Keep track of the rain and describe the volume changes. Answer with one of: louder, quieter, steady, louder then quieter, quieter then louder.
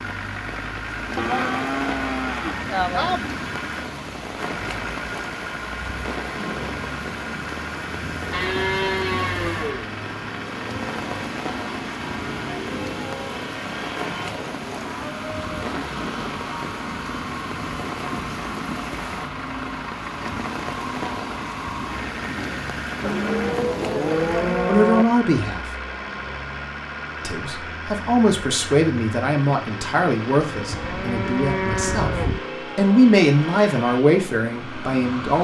steady.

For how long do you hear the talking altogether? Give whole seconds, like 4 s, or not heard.
9 s.